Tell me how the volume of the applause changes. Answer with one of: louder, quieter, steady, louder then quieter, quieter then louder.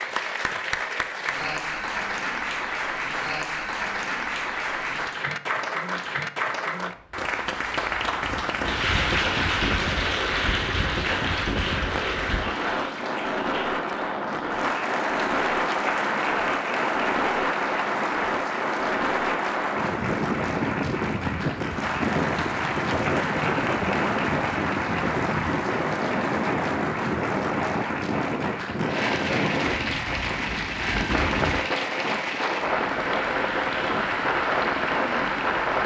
steady.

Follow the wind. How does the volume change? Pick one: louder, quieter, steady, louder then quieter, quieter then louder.
steady.